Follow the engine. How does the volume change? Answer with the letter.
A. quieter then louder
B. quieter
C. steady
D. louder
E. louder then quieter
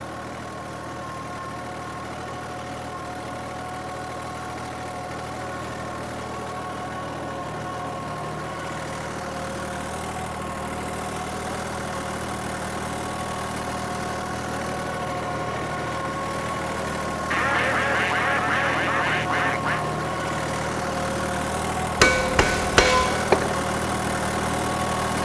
D.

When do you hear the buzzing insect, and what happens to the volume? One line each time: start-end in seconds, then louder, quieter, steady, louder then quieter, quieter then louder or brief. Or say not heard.
not heard.